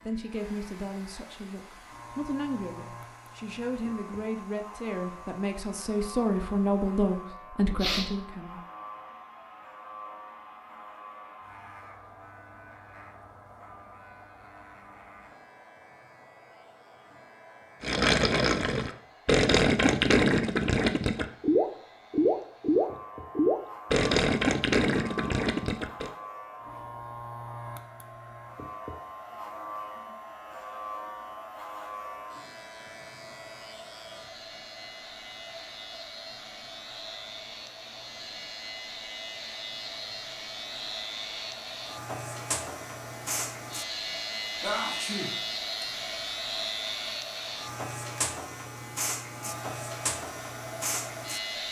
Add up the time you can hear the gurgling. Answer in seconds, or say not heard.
8 s.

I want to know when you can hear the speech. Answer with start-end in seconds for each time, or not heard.
0.1-8.6.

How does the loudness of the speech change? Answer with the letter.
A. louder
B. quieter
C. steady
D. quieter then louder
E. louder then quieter
A.